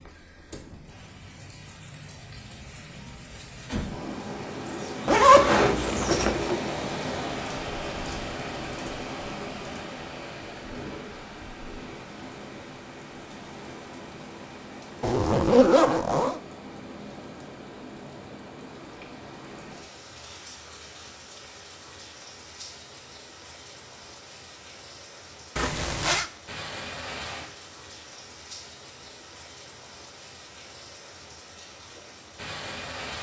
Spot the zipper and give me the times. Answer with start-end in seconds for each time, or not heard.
5.0-6.5, 15.0-16.4, 25.6-26.3.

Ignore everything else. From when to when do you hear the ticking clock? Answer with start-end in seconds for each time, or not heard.
not heard.